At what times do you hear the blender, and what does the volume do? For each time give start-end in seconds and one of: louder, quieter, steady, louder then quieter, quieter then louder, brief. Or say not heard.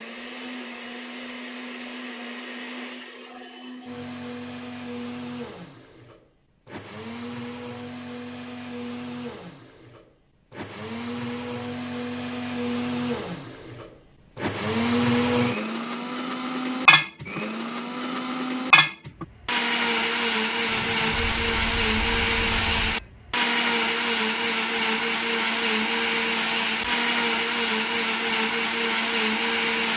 0.0-29.9 louder.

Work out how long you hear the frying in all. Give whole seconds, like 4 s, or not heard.
2 s.